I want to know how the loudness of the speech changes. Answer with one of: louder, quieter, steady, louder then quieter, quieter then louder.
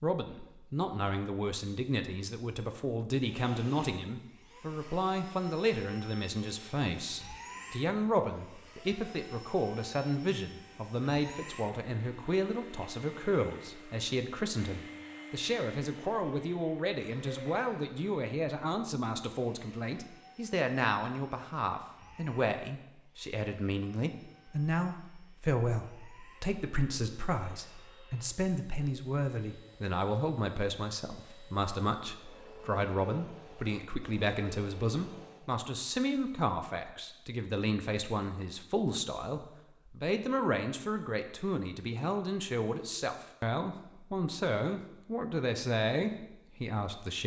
steady.